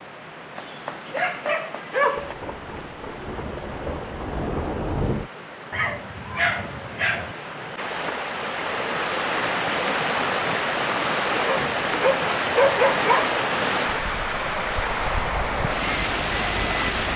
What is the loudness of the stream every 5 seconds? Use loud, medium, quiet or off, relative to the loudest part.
quiet, medium, loud, loud.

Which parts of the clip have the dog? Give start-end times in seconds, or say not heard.
0.6-2.4, 5.7-7.3, 11.4-13.3.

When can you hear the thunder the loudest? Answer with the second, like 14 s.
5 s.